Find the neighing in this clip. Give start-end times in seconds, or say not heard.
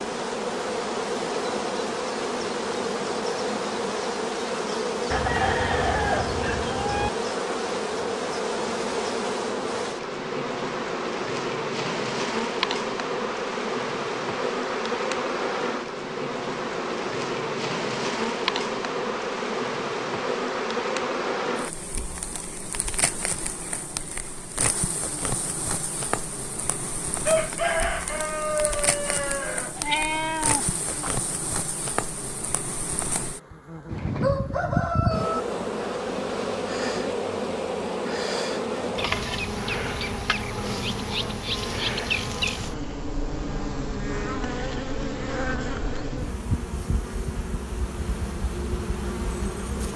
not heard.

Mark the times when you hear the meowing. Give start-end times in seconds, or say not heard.
29.8-31.2.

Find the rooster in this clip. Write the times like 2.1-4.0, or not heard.
5.1-7.1, 27.2-30.4, 33.9-35.4.